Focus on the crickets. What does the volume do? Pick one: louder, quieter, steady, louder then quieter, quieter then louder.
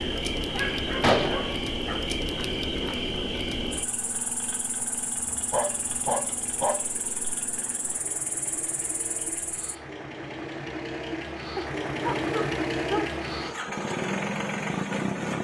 quieter.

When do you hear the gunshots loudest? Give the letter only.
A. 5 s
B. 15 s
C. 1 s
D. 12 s
C.